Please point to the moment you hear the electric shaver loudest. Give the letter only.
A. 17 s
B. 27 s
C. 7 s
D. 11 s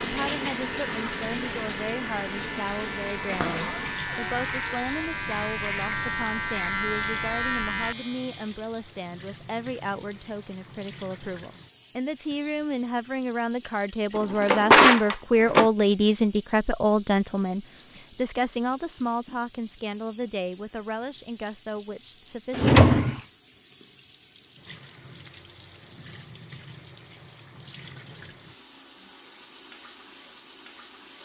C.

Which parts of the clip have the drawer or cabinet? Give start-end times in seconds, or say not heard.
3.2-4.8, 14.2-15.7, 22.6-23.1.